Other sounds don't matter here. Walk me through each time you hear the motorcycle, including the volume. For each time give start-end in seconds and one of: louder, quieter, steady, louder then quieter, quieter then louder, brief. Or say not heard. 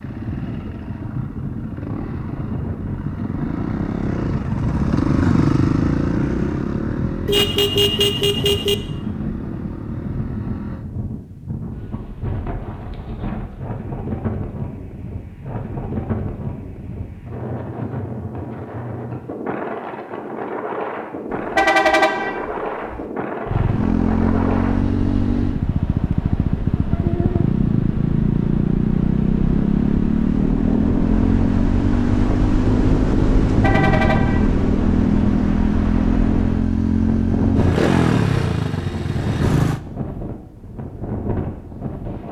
0.0-10.8 louder then quieter
23.4-39.8 steady.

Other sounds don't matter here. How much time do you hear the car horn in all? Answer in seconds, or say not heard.
4 s.